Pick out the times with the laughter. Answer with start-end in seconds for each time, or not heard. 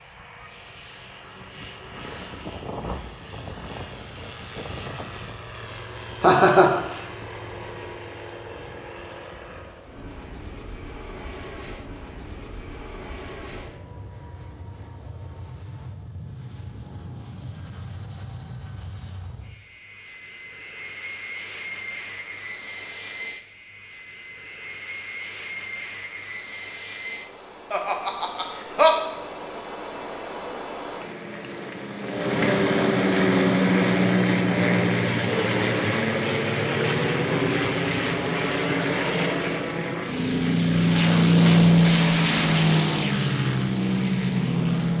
6.2-6.8, 27.7-28.9.